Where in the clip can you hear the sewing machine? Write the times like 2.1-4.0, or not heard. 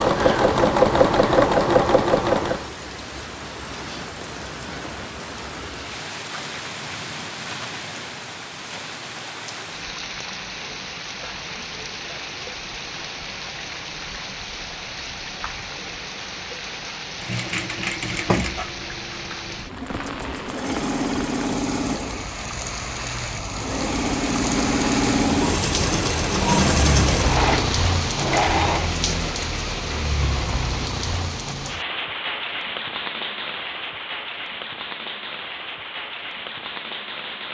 0.0-2.6, 17.1-28.9.